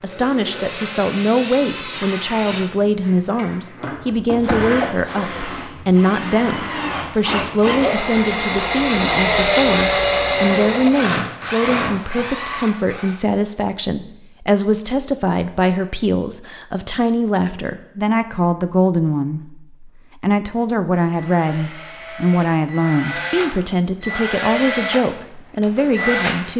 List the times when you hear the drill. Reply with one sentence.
You can hear the drill from 0.0 to 13.2 s and from 21.1 to 26.5 s.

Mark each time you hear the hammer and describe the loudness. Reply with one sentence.
The hammer can't be heard in this clip.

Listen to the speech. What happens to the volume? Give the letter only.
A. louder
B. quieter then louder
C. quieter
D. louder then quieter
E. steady
E.